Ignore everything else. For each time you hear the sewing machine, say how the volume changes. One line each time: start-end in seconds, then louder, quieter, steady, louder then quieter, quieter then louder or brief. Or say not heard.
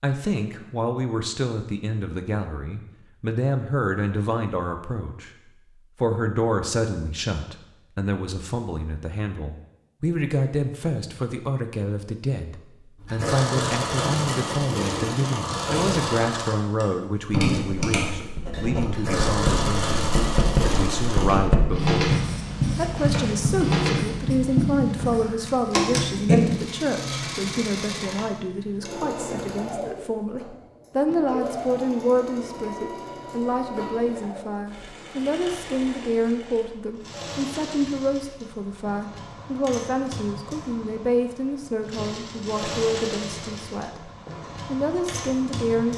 13.0-45.9 quieter.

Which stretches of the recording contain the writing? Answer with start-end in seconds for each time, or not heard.
17.6-26.7.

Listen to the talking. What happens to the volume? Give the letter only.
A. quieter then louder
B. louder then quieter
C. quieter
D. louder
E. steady
E.